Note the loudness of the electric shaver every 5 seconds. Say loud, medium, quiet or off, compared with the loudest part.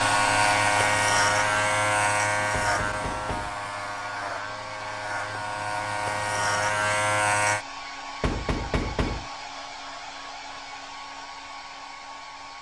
loud, loud, off.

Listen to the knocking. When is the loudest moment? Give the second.
9 s.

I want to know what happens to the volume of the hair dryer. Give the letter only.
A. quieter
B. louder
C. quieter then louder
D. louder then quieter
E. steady
A.